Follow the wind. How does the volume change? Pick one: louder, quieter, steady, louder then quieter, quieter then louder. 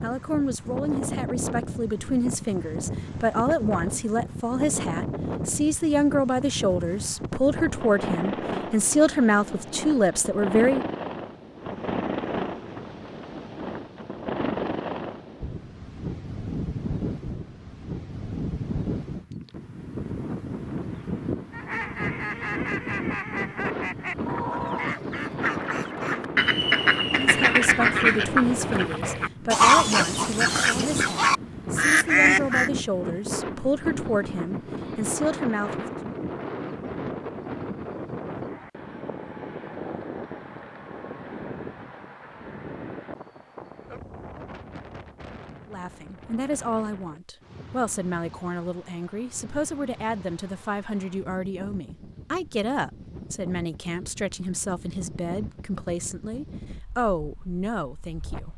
quieter.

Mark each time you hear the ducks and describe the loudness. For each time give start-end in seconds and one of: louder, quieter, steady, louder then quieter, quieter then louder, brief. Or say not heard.
21.5-32.7 louder.